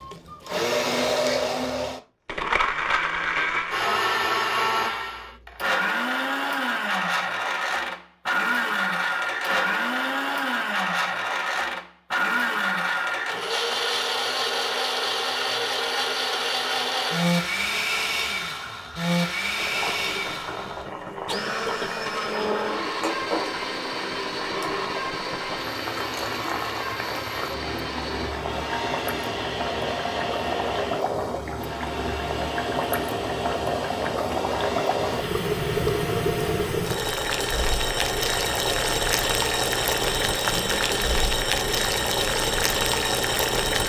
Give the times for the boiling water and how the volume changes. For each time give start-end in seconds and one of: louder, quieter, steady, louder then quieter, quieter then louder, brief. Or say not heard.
19.6-43.8 louder.